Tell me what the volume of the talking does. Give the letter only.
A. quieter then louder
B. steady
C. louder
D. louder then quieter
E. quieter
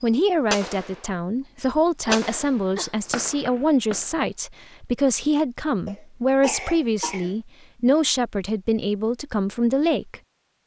B.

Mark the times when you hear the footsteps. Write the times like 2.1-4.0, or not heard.
not heard.